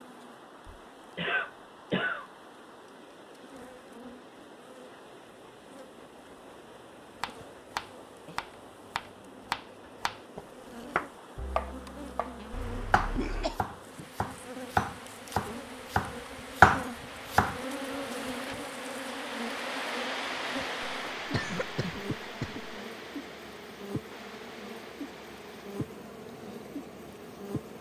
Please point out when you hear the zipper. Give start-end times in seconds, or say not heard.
not heard.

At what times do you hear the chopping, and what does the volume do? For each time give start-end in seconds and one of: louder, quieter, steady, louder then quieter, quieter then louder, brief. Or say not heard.
7.2-17.6 louder.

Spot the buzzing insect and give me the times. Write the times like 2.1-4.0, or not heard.
0.0-27.7.